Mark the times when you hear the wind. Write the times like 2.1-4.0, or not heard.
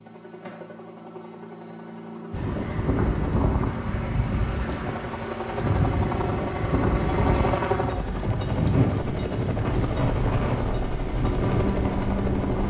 2.3-12.6.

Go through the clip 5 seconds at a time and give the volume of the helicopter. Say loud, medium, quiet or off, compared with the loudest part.
medium, loud, loud.